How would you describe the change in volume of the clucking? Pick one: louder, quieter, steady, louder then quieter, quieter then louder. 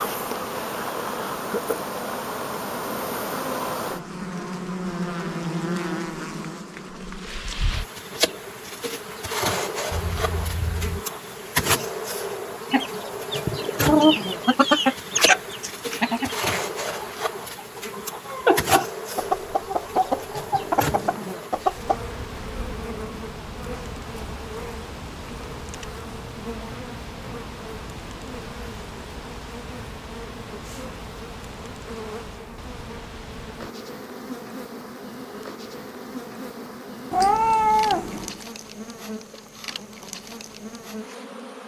quieter then louder.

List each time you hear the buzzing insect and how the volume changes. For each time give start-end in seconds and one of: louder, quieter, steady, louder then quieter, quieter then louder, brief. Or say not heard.
0.0-41.6 quieter.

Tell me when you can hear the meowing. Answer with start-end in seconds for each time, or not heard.
9.9-11.1, 15.9-16.6, 37.1-38.4.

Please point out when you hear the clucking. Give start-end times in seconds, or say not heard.
12.7-22.0.